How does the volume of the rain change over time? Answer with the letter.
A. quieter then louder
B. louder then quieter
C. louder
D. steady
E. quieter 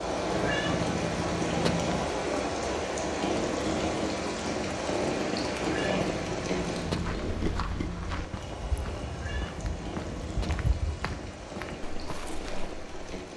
E.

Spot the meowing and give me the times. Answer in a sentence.
The meowing can be heard from 0.3 to 2.0 s, from 5.5 to 7.2 s and from 9.1 to 10.7 s.